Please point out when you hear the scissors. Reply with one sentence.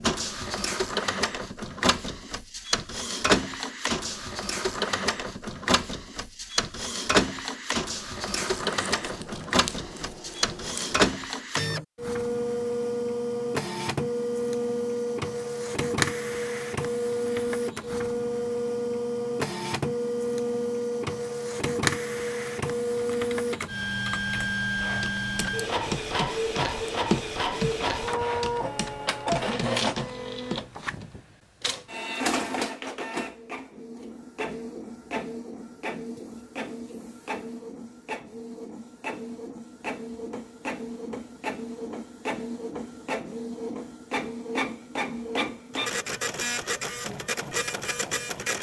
You can hear the scissors from 8.5 to 11.0 s.